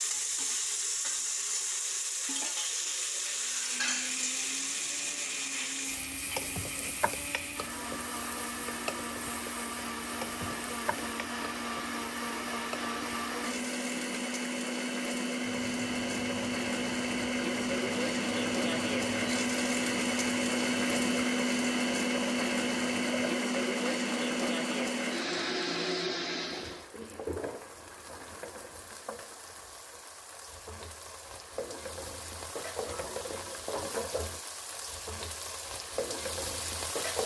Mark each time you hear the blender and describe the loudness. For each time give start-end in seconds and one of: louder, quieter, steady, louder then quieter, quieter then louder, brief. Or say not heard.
3.1-26.9 louder.